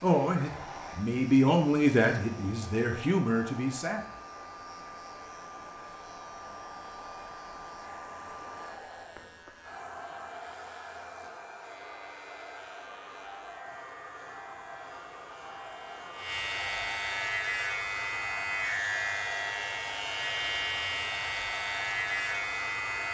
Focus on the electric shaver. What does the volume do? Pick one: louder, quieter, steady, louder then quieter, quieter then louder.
louder.